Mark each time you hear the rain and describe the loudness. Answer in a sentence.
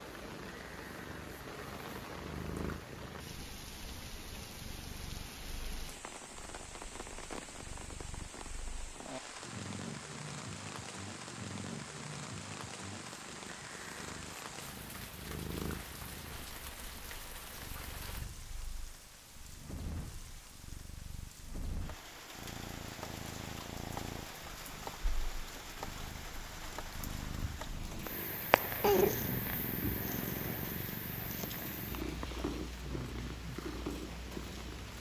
The rain can be heard from 0.0 to 34.9 s, at a steady volume.